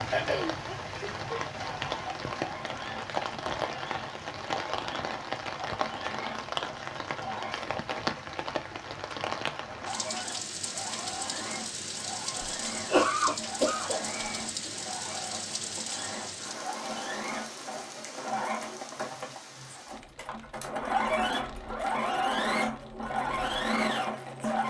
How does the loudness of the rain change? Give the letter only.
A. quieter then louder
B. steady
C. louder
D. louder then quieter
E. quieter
E.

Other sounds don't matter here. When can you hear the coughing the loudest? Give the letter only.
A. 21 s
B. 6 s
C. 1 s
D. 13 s
D.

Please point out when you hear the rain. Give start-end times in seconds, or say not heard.
0.0-24.6.